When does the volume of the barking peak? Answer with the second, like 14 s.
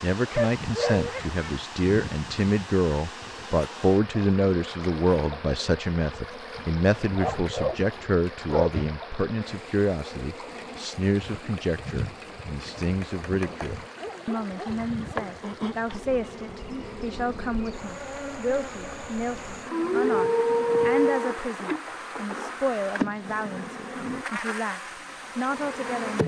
21 s.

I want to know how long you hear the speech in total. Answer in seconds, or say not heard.
26 s.